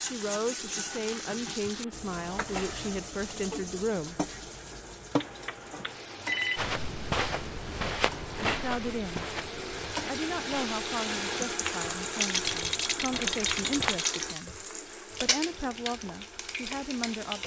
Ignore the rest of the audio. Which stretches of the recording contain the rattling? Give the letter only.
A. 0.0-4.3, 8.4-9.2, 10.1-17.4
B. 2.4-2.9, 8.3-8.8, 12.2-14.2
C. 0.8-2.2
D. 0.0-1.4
B.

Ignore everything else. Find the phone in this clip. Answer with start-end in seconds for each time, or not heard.
5.2-6.6.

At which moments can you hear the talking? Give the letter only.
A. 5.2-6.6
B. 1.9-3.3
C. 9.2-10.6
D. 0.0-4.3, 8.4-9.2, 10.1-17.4
D.